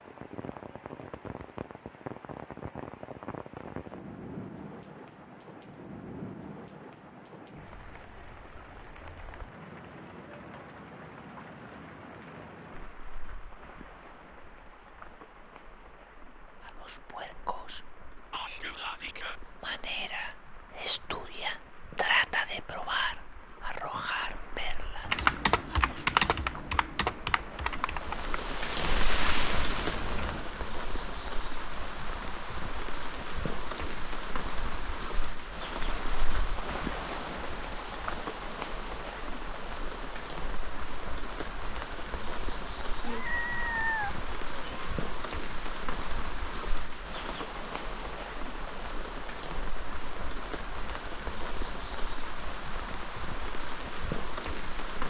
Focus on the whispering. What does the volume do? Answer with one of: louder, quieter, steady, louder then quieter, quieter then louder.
louder then quieter.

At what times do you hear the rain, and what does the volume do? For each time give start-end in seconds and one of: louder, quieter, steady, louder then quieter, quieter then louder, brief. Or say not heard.
0.0-55.0 quieter then louder.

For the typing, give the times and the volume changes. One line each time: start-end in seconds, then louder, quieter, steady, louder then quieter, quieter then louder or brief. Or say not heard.
25.0-30.4 quieter.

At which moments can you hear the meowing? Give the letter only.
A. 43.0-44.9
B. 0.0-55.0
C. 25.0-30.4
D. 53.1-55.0
A.